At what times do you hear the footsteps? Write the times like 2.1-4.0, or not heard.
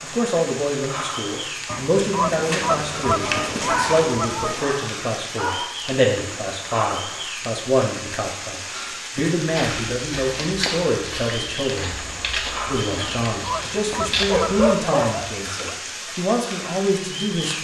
2.3-4.7, 9.5-14.2.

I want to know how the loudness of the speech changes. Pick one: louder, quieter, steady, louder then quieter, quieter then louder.
steady.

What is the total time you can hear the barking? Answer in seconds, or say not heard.
4 s.